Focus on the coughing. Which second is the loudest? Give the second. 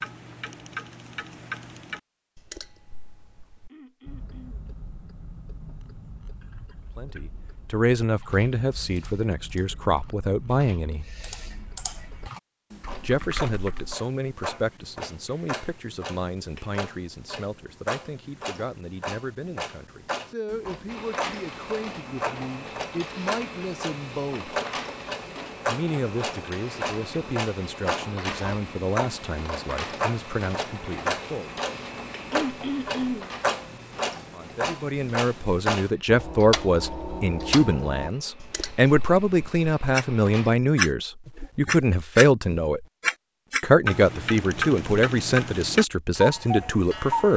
33 s.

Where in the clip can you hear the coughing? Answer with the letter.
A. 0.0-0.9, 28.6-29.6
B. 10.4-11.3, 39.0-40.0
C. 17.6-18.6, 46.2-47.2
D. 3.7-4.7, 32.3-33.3
D.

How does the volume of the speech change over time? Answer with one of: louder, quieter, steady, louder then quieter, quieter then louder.
quieter then louder.